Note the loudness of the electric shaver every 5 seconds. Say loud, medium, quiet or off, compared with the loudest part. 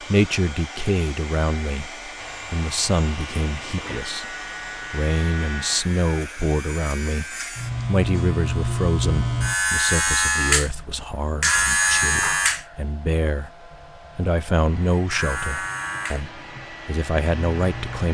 quiet, medium, loud, medium.